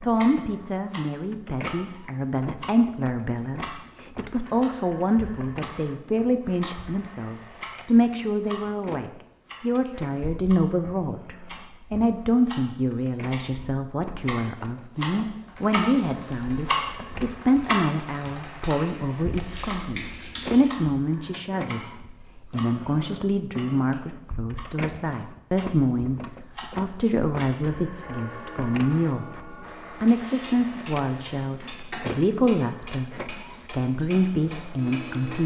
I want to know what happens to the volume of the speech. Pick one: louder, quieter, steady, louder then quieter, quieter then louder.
steady.